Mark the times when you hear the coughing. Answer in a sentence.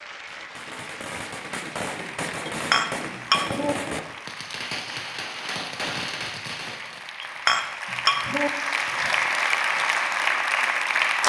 You can't hear the coughing here.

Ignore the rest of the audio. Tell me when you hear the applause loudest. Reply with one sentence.
The loudest moment of the applause is at 11 seconds.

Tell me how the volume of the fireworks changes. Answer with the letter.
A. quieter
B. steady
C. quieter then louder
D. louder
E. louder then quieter
B.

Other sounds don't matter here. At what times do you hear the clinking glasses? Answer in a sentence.
You can hear the clinking glasses from 2.5 to 3.8 s and from 7.2 to 8.5 s.